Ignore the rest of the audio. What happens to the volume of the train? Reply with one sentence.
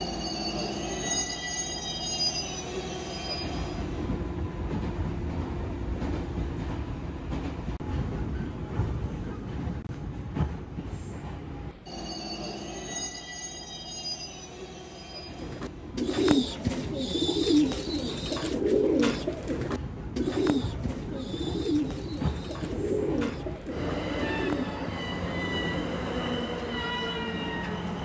The loudness of the train goes down, then up.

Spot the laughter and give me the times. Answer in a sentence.
The laughter can't be heard in this clip.